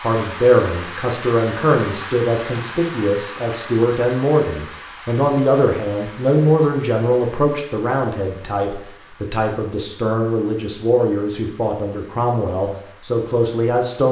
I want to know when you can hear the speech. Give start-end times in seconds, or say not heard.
0.0-14.0.